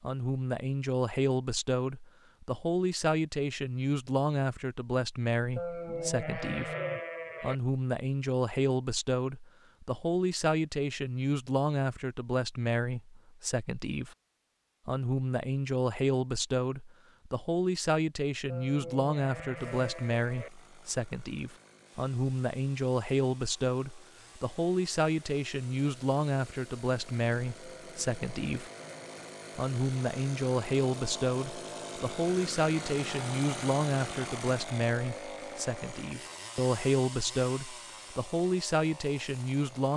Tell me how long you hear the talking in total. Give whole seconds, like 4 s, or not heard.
38 s.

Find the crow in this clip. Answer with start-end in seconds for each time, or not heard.
not heard.